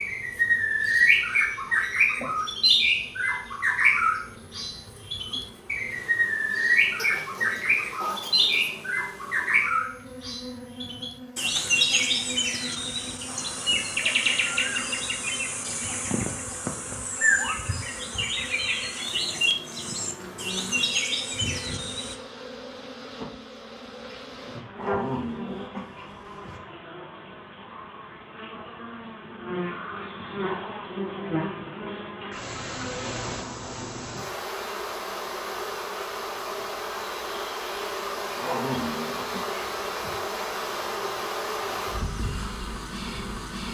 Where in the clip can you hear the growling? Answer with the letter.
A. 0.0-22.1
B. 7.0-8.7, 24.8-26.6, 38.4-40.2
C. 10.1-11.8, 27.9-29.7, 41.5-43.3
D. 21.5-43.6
B.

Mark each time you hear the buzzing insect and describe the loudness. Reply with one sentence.
You can hear the buzzing insect from 0.0 to 43.6 s, getting louder.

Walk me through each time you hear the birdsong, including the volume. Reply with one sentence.
The birdsong can be heard from 0.0 to 22.1 s, getting quieter.